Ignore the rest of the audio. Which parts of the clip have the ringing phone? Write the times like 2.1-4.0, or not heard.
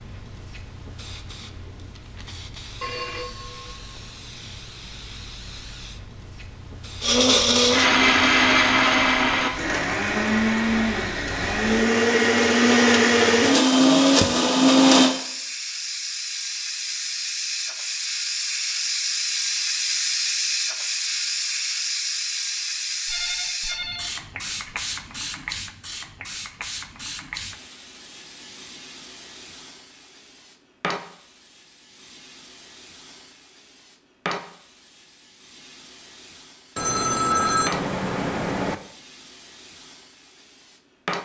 2.8-4.1, 23.1-24.8, 36.8-38.8.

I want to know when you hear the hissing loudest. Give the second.
20 s.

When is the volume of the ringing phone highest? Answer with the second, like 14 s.
37 s.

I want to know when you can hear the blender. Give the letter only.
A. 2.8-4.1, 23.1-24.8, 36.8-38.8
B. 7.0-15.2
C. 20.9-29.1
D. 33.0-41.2
B.